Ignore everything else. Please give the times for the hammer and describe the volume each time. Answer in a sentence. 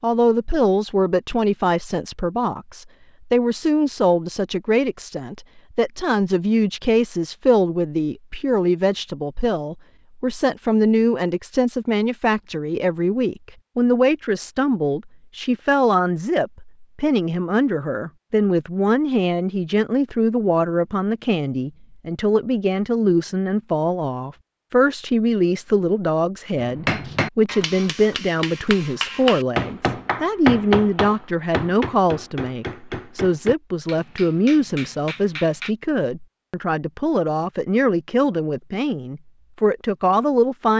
The hammer can be heard from 26.6 to 35.8 s, getting louder then quieter.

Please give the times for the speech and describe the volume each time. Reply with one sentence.
You can hear the speech from 0.0 to 40.7 s, at a steady volume.